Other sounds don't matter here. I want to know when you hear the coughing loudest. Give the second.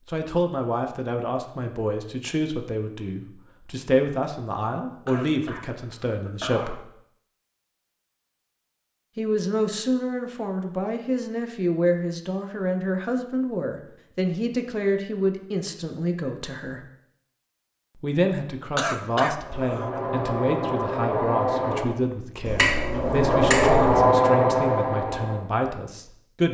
19 s.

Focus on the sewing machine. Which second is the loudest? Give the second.
24 s.